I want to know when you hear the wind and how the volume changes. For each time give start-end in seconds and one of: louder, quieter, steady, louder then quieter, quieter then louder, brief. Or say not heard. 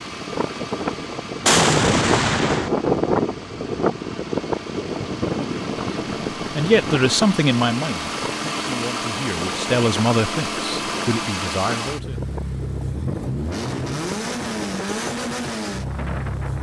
0.0-16.5 quieter.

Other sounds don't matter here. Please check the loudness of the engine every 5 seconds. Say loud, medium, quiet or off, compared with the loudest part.
medium, loud, loud, loud.